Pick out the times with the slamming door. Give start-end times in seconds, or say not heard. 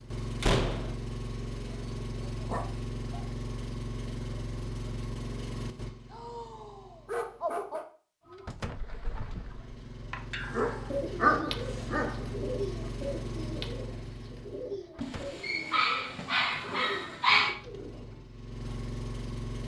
0.4-0.9, 8.4-8.9, 14.9-15.4.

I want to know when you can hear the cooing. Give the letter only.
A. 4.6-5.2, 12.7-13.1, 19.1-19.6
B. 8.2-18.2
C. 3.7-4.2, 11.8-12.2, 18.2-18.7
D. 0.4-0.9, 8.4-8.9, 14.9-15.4
B.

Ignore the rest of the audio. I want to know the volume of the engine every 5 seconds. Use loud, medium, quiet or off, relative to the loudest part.
loud, medium, loud, loud.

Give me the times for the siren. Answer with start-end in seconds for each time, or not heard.
not heard.